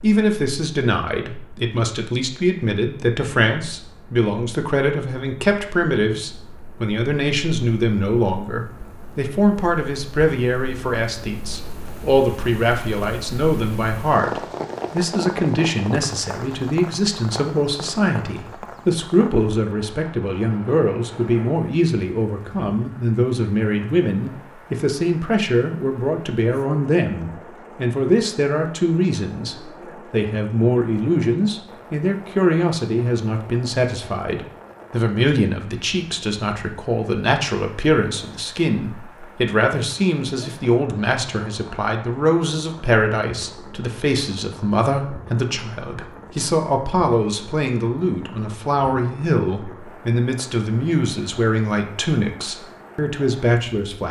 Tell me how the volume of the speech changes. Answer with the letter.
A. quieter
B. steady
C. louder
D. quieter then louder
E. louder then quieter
B.